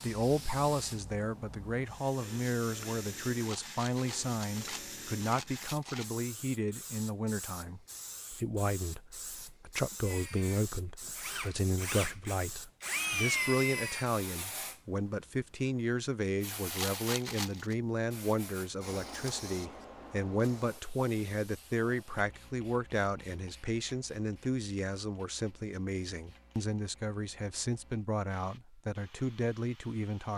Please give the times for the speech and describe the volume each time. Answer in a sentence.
You can hear the speech from 0.0 to 30.3 s, at a steady volume.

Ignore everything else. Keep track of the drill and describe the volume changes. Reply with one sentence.
The volume of the drill goes up.